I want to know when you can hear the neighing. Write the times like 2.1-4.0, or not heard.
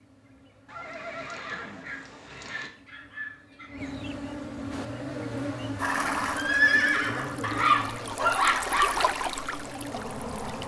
0.7-2.7, 5.8-7.3.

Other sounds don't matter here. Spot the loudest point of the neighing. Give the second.
7 s.